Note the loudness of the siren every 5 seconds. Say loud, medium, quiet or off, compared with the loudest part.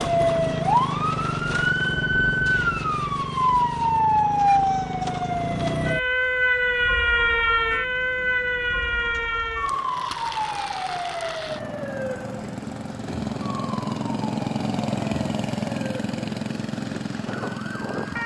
loud, loud, medium, quiet.